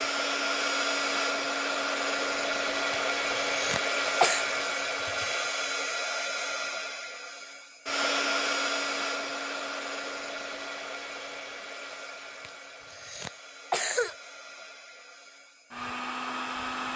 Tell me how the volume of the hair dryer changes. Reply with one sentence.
The loudness of the hair dryer goes down.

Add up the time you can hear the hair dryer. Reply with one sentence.
The hair dryer can be heard for 17 seconds in total.